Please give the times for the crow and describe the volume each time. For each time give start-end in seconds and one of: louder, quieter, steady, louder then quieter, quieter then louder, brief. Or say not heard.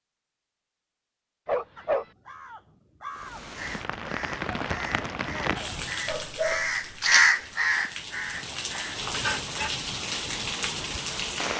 1.8-9.1 louder then quieter.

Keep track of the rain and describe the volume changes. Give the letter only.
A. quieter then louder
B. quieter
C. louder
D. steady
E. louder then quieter
A.